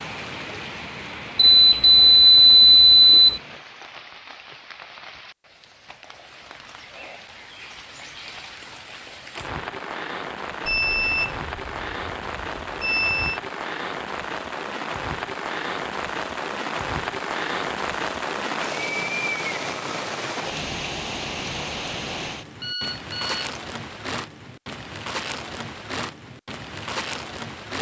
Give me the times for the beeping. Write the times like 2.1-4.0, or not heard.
1.4-3.4, 10.7-13.4, 22.6-23.5.